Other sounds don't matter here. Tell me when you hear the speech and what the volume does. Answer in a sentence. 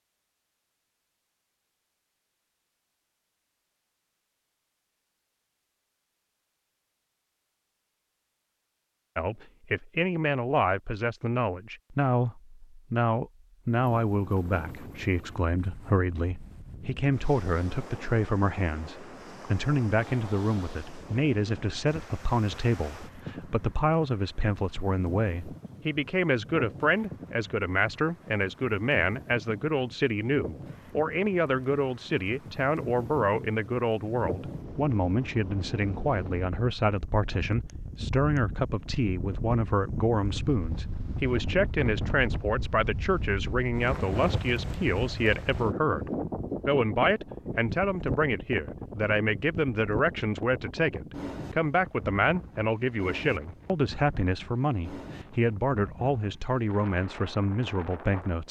The speech can be heard from 9.2 to 58.4 s, at a steady volume.